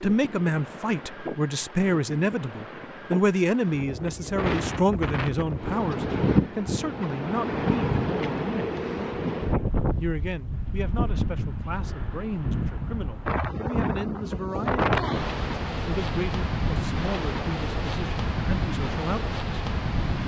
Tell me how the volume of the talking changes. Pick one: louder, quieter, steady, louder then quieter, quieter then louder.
quieter.